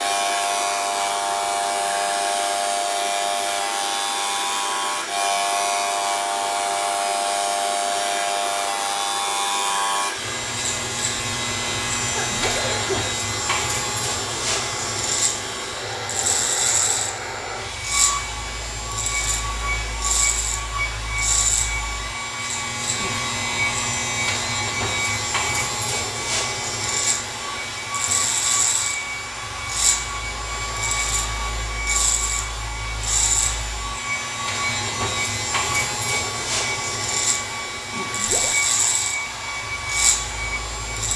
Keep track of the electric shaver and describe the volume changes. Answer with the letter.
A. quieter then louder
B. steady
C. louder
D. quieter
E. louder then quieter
B.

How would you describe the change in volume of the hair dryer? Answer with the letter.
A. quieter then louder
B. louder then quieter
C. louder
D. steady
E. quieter
D.